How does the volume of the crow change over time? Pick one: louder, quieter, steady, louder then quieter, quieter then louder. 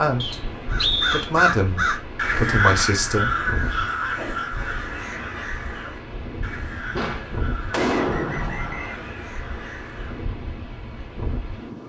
quieter.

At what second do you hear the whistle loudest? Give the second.
1 s.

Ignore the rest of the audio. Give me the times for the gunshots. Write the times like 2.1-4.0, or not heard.
6.9-8.8.